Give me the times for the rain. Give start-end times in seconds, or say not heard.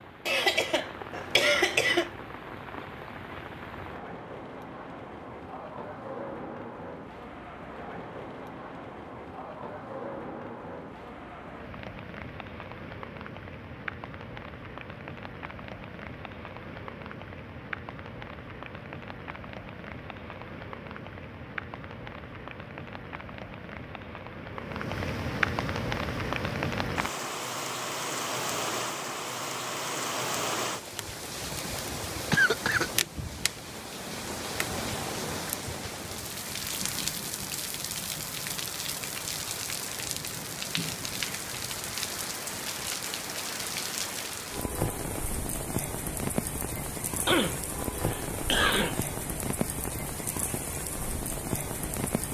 0.0-52.2.